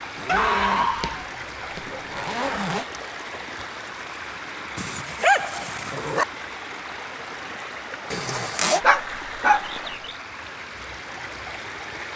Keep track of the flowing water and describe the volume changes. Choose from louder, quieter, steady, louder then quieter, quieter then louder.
steady.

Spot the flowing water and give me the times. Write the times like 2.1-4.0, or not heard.
0.0-12.1.